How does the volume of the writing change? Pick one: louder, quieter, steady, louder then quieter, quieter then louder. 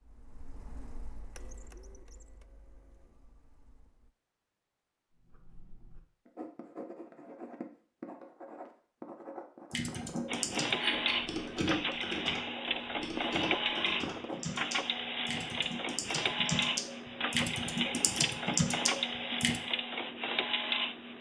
louder.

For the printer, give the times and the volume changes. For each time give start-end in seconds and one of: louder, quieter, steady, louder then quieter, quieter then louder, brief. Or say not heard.
0.0-4.2 quieter
10.2-21.1 steady.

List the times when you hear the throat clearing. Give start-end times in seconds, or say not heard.
10.5-11.2.